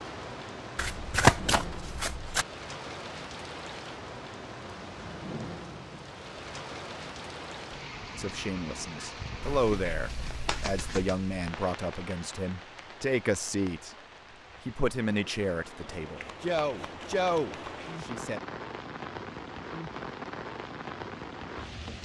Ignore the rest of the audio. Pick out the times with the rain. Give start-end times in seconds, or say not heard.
0.0-21.9.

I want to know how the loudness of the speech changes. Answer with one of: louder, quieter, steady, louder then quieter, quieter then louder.
steady.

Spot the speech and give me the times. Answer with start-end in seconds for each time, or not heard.
8.2-13.9, 14.7-18.4.